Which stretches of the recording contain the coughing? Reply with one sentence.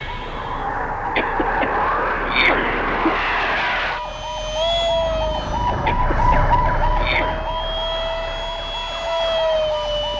The coughing can be heard from 1.1 to 2.9 s and from 5.8 to 7.4 s.